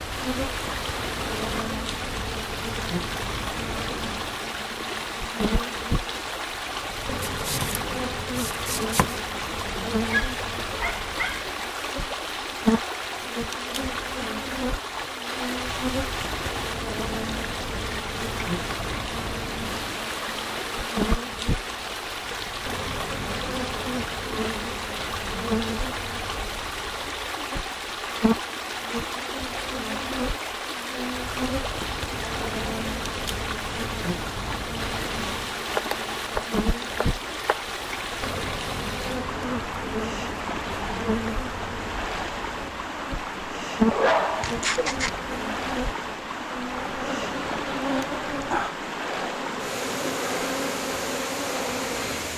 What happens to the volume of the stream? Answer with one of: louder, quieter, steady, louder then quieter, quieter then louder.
steady.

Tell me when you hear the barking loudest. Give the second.
44 s.